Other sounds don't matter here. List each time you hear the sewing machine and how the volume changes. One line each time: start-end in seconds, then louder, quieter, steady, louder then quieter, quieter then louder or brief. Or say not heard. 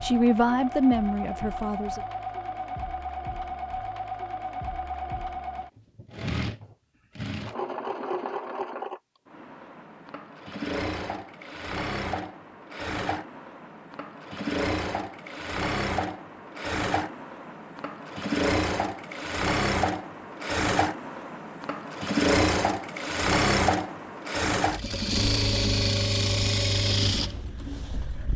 0.0-28.3 louder.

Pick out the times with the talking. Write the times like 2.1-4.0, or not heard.
0.0-2.0.